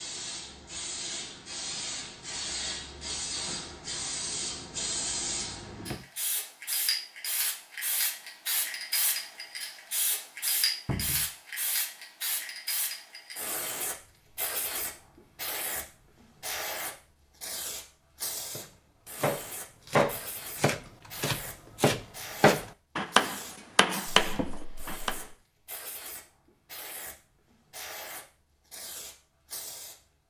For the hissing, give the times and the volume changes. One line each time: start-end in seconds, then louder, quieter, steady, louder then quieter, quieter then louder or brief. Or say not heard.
0.0-30.0 quieter.